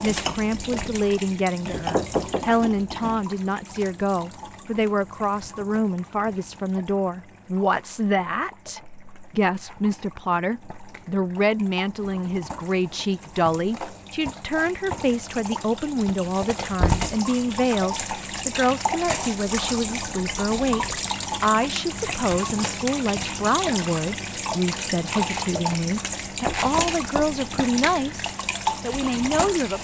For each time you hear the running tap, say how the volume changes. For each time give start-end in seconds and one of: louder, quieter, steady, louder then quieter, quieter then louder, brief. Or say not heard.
0.0-29.8 quieter then louder.